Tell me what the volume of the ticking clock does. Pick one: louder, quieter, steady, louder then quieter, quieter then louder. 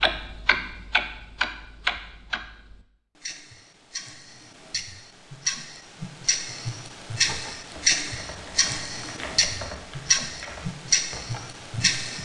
quieter then louder.